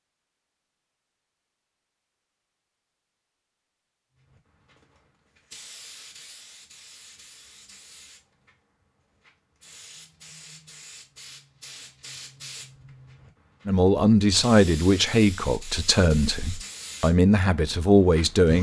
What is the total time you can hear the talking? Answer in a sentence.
The talking can be heard for 5 seconds in total.